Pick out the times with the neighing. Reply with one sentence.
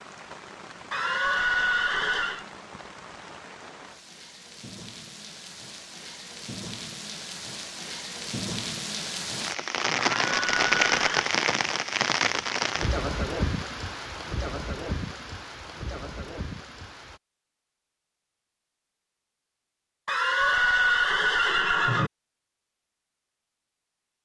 The neighing can be heard from 0.9 to 2.5 s, from 10.2 to 11.3 s and from 20.1 to 22.1 s.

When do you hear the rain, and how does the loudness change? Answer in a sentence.
The rain can be heard from 0.0 to 17.2 s, getting louder then quieter.